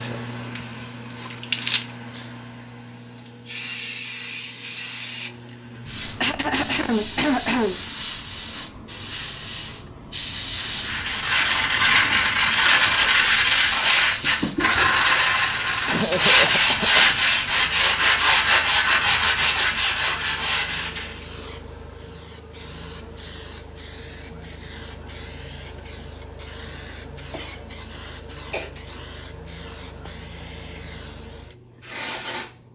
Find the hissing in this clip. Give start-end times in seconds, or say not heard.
0.0-32.6.